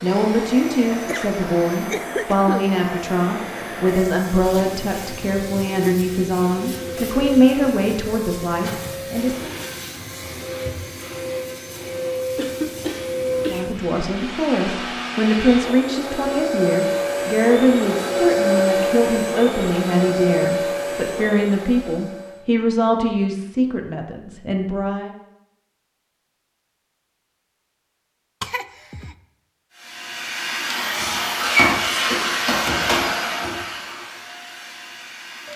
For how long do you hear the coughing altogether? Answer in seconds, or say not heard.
4 s.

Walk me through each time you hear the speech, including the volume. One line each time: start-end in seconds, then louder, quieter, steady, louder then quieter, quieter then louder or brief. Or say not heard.
0.0-9.5 steady
13.4-25.1 steady.